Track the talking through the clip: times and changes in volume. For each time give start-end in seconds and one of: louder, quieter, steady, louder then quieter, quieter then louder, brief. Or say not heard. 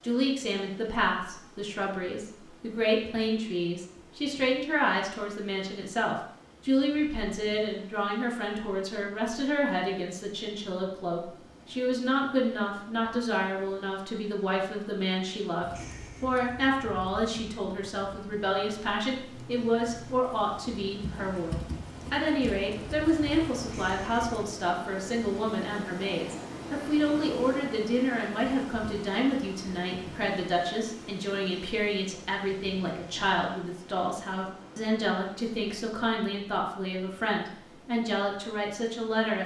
0.0-39.4 steady.